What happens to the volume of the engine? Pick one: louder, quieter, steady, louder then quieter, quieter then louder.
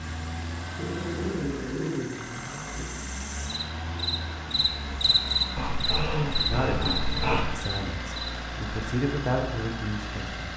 steady.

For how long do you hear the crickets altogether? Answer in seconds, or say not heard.
8 s.